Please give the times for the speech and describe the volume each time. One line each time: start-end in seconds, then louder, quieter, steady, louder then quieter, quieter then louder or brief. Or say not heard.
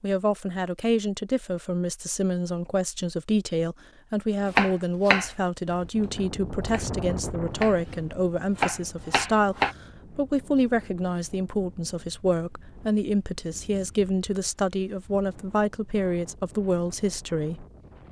0.0-17.6 steady.